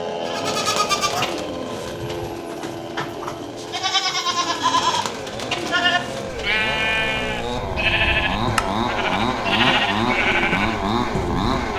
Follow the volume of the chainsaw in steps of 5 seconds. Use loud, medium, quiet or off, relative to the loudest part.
medium, loud, loud.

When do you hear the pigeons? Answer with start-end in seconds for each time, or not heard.
0.2-6.7.